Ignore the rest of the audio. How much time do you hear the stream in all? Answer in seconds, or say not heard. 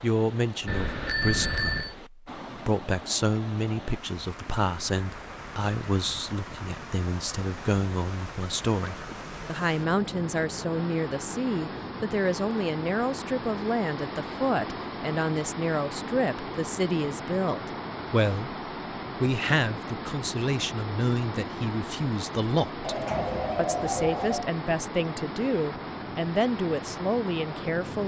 28 s.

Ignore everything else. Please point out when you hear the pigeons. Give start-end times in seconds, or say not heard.
22.8-24.4.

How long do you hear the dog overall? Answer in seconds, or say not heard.
not heard.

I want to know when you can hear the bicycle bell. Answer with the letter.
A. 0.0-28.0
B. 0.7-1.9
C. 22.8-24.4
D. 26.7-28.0
B.